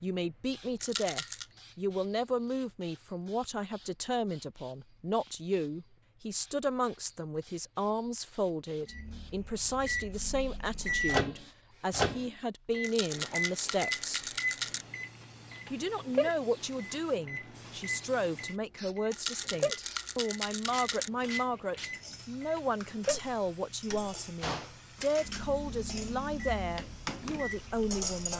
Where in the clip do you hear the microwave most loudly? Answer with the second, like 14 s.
12 s.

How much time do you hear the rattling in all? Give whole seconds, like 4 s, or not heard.
5 s.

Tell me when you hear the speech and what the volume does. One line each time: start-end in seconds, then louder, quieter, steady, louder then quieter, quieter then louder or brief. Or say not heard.
0.0-14.2 steady
15.7-28.3 steady.